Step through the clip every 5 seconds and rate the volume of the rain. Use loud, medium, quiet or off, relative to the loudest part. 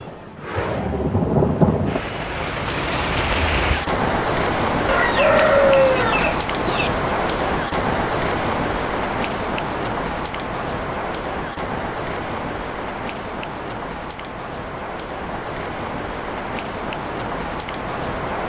loud, loud, medium, medium.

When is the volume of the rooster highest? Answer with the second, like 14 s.
6 s.